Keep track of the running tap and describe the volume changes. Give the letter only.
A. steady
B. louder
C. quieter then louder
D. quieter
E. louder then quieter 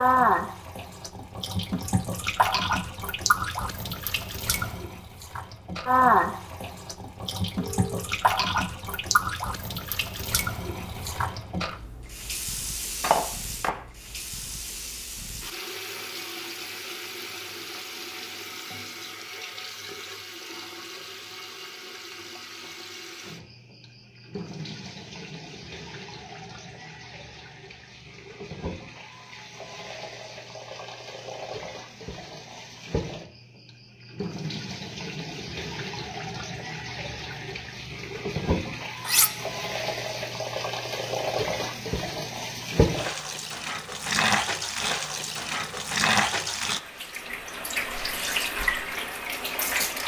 C.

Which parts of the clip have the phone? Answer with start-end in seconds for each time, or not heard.
7.6-8.1.